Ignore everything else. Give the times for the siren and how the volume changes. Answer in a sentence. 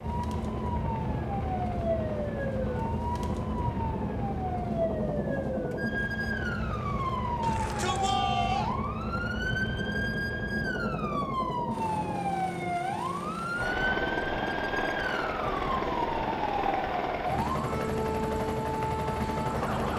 You can hear the siren from 0.0 to 19.9 s, at a steady volume.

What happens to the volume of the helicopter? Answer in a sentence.
The loudness of the helicopter stays about the same.